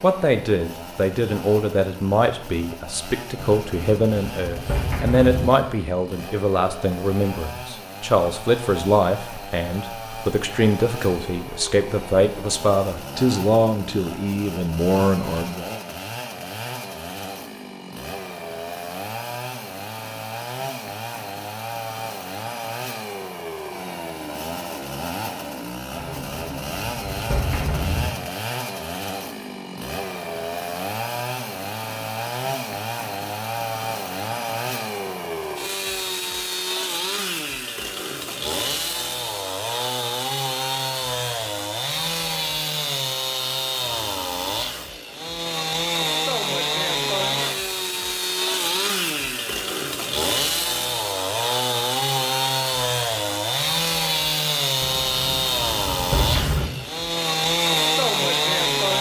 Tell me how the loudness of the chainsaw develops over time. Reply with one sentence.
The loudness of the chainsaw goes up.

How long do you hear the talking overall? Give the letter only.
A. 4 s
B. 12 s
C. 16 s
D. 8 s
C.